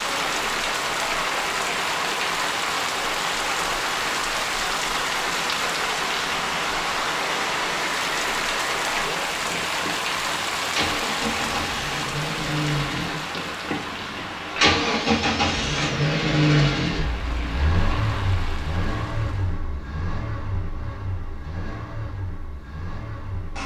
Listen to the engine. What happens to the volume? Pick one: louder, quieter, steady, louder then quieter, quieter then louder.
louder then quieter.